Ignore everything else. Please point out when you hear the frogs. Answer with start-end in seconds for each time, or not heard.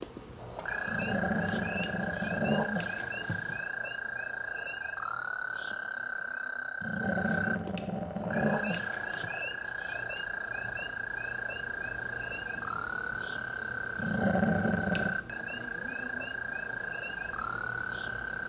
0.0-18.4.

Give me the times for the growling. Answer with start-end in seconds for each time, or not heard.
0.8-3.6, 6.8-9.3, 13.9-15.2.